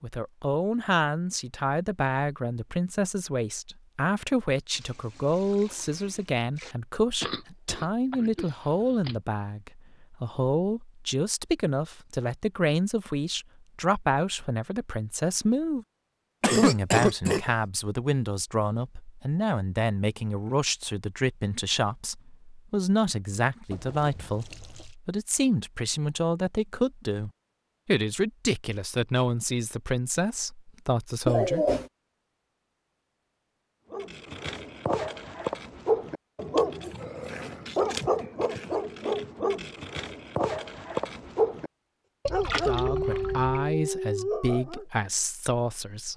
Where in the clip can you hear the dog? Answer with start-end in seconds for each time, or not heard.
33.9-41.7, 42.3-44.9.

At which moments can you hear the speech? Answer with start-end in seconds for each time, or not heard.
0.0-15.8, 16.6-31.6, 42.6-46.1.